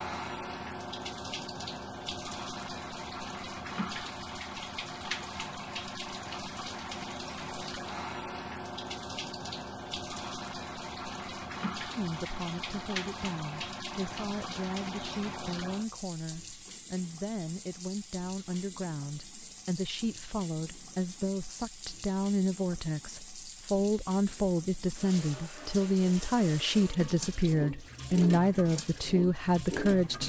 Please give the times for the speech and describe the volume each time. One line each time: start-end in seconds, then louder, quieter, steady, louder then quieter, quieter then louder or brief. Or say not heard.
11.9-30.2 louder.